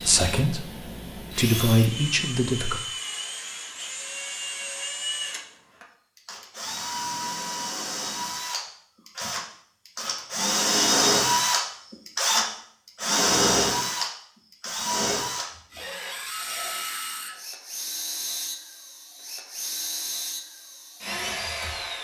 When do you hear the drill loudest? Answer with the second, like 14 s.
11 s.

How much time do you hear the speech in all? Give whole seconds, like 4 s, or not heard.
3 s.